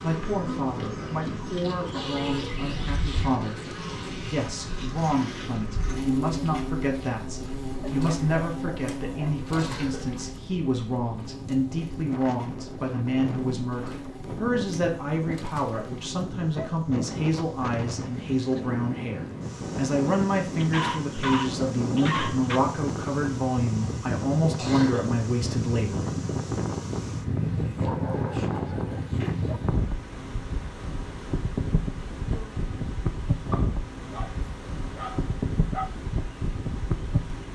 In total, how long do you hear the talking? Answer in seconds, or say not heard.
26 s.